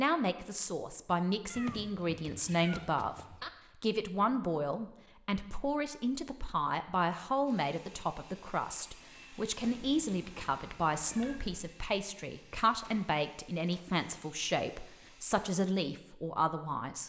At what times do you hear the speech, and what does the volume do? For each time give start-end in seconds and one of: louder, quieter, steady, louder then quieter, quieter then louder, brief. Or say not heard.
0.0-17.0 steady.